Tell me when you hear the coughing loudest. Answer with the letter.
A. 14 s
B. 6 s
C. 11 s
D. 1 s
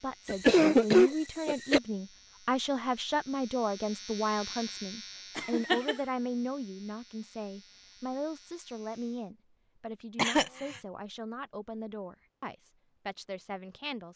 D.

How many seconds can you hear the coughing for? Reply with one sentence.
The coughing can be heard for 3 seconds in total.